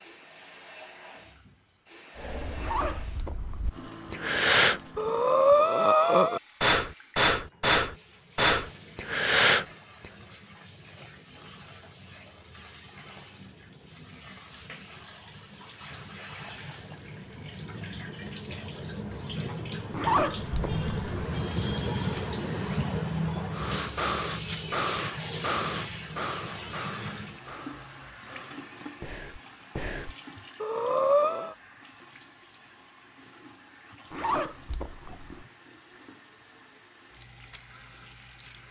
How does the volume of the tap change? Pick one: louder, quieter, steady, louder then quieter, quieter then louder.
louder then quieter.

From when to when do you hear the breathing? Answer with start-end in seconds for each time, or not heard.
2.1-9.7, 23.5-31.6.